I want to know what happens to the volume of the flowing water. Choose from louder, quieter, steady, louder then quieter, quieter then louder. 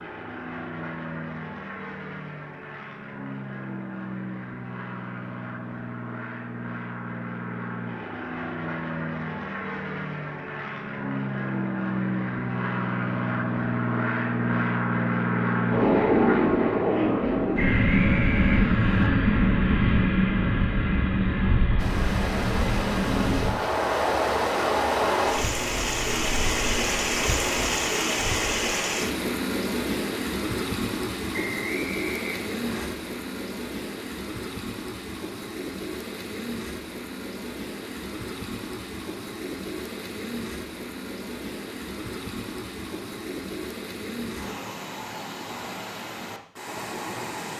quieter.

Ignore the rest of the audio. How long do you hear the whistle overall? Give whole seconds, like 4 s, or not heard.
3 s.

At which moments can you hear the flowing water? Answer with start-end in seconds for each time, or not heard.
21.8-47.5.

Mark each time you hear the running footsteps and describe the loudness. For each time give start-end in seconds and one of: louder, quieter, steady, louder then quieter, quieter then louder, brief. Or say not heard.
not heard.